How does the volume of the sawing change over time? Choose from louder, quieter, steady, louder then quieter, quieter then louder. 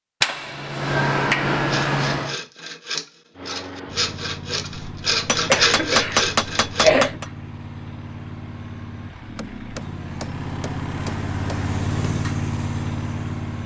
louder.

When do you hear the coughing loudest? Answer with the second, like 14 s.
7 s.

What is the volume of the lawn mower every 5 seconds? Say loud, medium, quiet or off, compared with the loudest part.
medium, medium, loud.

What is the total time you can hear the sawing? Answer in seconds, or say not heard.
5 s.